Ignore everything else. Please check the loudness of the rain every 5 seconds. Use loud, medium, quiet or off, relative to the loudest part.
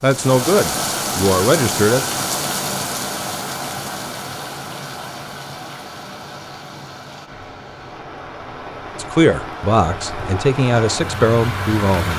loud, medium, loud.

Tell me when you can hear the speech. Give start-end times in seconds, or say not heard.
0.0-2.0, 8.9-12.1.